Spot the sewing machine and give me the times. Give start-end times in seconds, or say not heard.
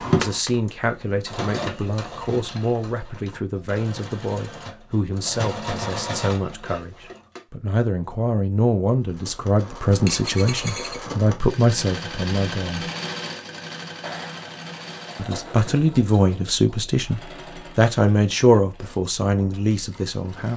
0.0-7.4, 9.0-20.5.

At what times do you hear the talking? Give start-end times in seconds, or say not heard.
0.1-12.9, 15.2-20.5.